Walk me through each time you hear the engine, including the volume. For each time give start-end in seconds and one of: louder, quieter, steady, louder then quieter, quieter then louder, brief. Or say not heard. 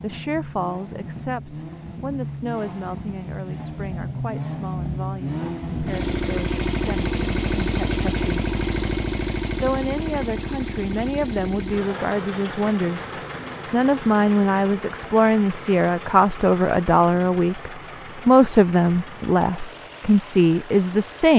0.0-21.3 louder then quieter.